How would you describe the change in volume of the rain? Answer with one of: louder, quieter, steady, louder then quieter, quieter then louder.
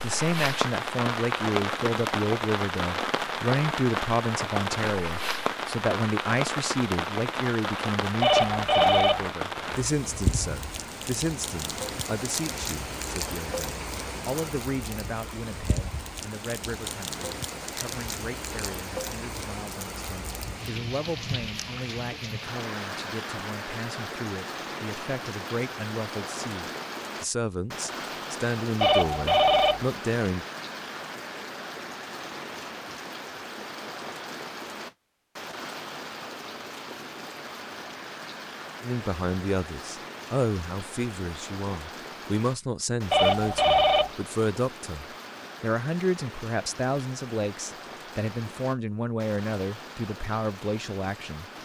quieter.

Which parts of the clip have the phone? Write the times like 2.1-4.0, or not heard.
8.2-9.2, 28.8-29.9, 43.1-44.1.